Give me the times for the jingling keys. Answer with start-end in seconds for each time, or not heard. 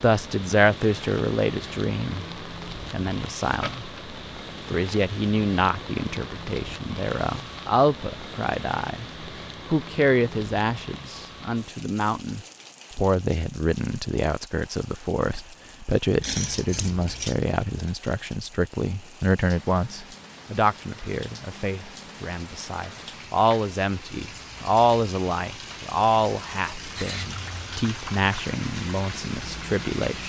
3.5-4.0, 16.2-17.4, 26.9-27.8.